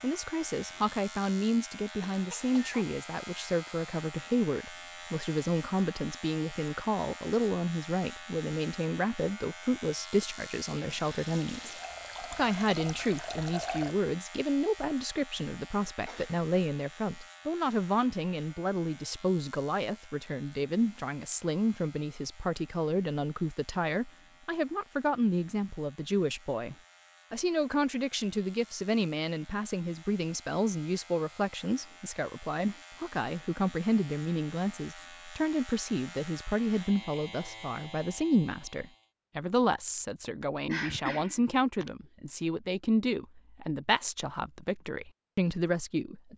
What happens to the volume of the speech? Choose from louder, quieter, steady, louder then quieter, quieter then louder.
steady.